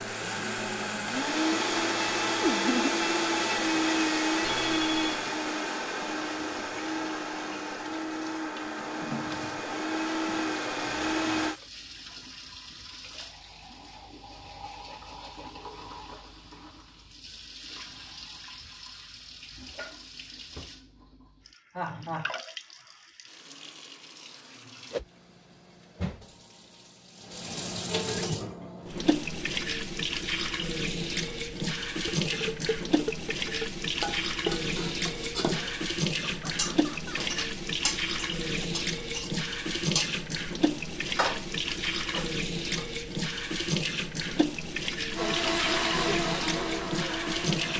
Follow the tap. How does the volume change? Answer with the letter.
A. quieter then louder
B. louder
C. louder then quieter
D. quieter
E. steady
B.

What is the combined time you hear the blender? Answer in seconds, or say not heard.
14 s.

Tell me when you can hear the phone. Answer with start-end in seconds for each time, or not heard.
4.4-5.3.